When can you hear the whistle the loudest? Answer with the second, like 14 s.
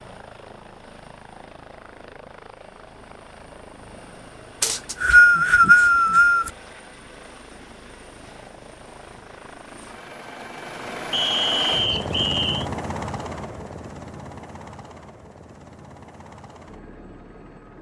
5 s.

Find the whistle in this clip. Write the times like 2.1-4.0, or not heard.
4.6-6.5, 11.1-12.7.